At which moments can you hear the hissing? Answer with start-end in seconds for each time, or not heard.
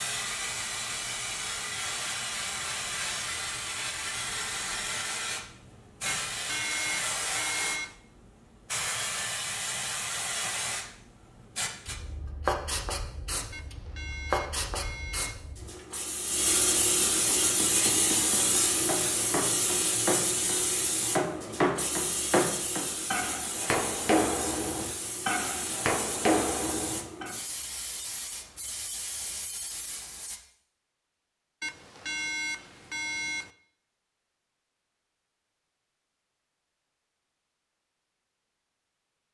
0.0-30.4.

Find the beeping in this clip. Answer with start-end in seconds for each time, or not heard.
6.0-8.0, 13.5-15.3, 31.6-33.5.